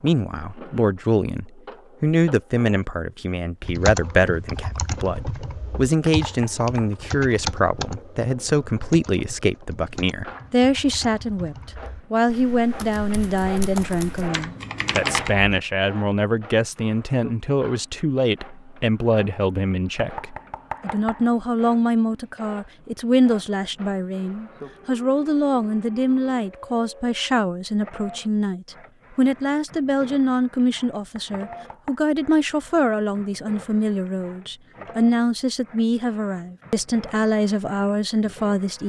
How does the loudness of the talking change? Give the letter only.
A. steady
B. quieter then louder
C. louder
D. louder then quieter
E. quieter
A.